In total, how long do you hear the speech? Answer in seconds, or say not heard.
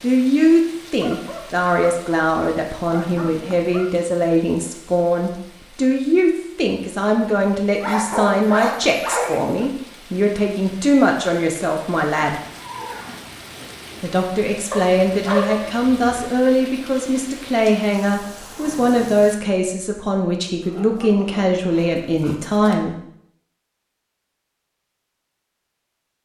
21 s.